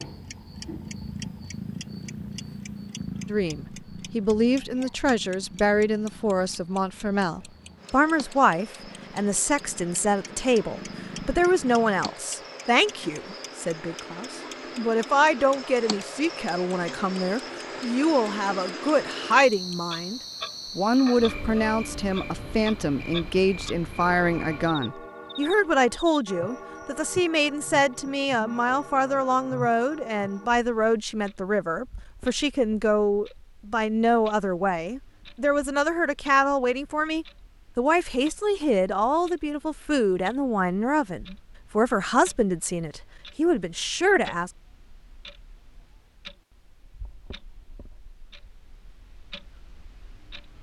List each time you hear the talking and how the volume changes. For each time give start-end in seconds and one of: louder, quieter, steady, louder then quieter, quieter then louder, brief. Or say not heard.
3.2-44.5 steady.